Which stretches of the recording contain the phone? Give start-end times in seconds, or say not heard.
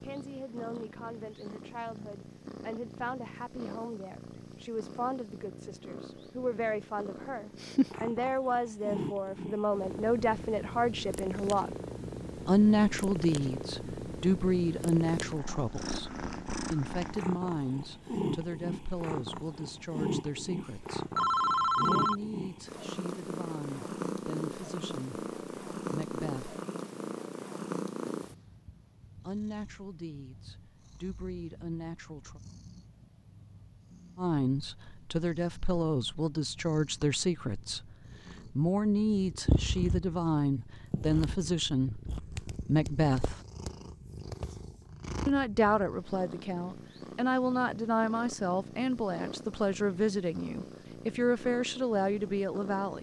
20.6-22.1.